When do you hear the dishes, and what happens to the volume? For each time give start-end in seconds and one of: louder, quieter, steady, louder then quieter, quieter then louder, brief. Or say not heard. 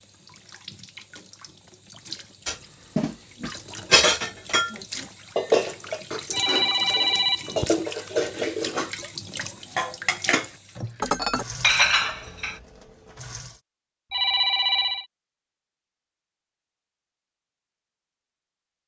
2.5-8.9 quieter then louder
9.8-12.6 brief.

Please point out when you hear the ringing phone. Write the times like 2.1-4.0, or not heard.
6.3-7.7, 14.1-15.1.